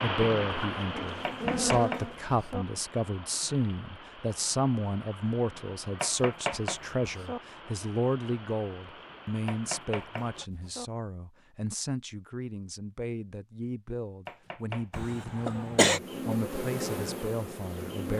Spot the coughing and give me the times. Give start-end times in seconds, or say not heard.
14.9-16.0.